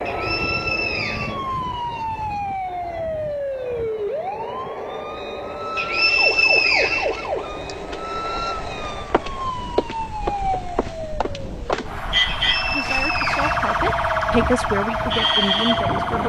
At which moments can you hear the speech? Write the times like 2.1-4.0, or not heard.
12.7-16.2.